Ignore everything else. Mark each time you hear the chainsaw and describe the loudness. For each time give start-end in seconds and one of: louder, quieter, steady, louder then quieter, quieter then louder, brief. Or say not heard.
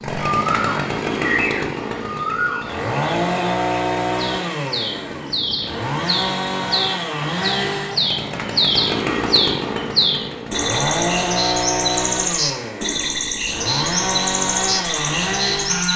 0.0-15.9 steady.